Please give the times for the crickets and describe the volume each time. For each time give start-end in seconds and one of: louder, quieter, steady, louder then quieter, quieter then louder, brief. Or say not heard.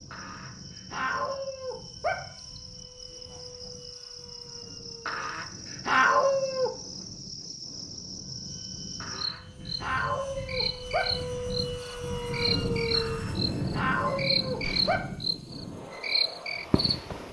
0.0-17.2 louder.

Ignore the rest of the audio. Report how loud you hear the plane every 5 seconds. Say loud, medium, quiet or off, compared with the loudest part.
quiet, quiet, loud, medium.